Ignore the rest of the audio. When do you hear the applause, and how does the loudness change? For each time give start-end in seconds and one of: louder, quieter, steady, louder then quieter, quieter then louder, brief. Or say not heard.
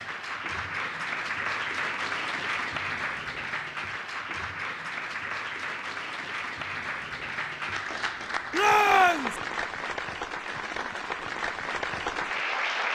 0.0-12.9 steady.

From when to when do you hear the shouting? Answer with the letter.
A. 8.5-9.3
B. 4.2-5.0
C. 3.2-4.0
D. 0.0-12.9
A.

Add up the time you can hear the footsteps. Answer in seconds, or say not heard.
not heard.